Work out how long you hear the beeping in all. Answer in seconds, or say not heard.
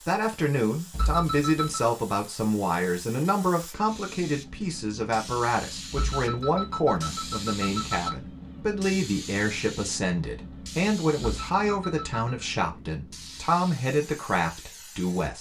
4 s.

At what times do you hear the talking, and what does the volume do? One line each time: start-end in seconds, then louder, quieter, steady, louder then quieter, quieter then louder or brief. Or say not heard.
0.1-15.3 steady.